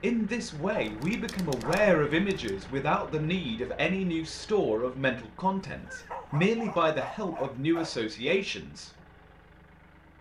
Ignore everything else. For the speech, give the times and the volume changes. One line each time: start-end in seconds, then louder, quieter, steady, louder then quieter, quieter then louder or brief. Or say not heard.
0.0-8.9 steady.